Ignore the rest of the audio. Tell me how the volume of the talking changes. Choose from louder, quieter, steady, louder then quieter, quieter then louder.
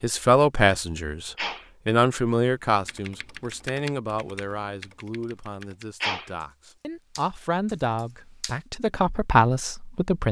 quieter then louder.